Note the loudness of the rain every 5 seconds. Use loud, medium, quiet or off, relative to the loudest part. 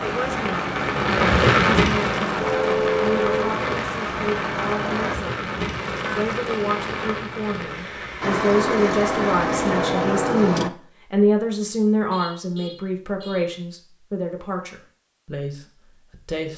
loud, medium, off, off.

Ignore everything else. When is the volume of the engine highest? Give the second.
10 s.